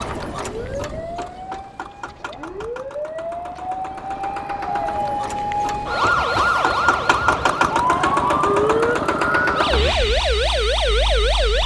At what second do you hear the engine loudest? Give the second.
8 s.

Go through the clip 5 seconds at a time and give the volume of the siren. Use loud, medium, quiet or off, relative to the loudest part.
medium, loud, loud.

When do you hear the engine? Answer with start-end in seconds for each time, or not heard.
0.0-11.6.